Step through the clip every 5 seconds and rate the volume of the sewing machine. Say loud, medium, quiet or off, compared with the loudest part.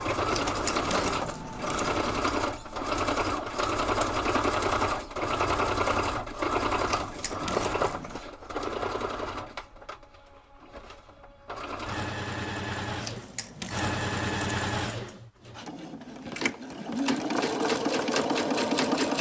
loud, loud, medium, loud.